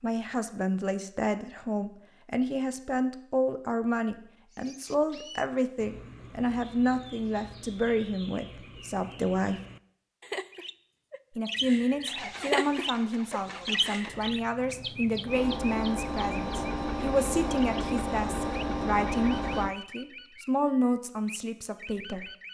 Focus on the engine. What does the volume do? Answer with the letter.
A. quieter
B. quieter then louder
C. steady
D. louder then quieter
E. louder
E.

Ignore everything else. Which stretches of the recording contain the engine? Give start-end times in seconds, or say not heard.
11.6-19.8.